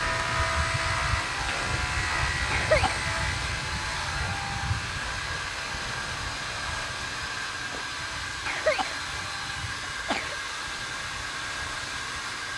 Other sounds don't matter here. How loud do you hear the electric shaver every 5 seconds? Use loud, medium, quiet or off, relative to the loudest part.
loud, medium, quiet.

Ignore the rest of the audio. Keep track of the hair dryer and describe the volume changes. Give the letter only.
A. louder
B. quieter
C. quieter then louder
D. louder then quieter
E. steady
E.